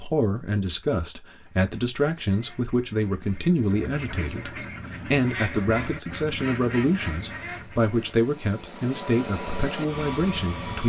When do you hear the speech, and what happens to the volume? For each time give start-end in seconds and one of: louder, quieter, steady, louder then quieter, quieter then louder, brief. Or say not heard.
0.0-10.8 steady.